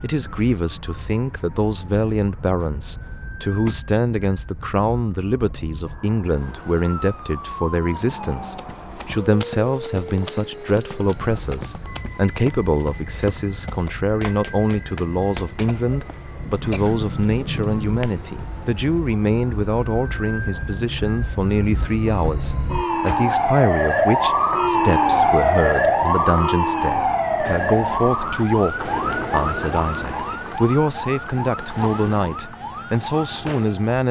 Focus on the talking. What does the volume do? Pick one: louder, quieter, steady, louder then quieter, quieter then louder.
steady.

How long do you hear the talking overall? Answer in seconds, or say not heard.
34 s.